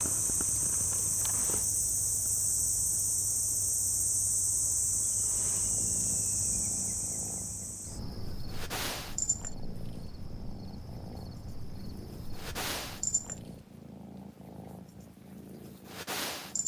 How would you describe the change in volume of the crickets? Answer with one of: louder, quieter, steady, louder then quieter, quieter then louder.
quieter.